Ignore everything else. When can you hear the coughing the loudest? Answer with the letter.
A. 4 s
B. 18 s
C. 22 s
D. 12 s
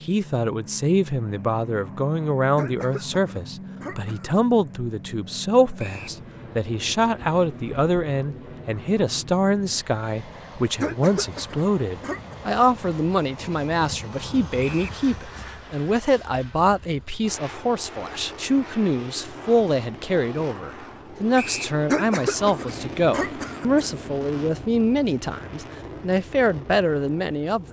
C.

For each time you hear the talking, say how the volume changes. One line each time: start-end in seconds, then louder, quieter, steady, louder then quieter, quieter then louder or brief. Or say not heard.
0.0-27.6 steady.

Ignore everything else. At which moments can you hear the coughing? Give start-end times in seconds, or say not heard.
2.5-4.3, 10.8-12.3, 21.9-23.9.